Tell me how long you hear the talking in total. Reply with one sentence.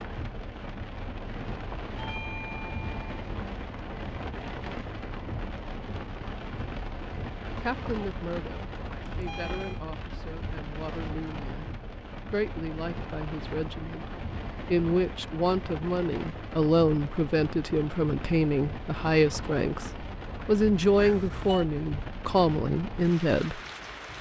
The talking can be heard for 16 seconds in total.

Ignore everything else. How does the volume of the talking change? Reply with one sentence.
The loudness of the talking goes up.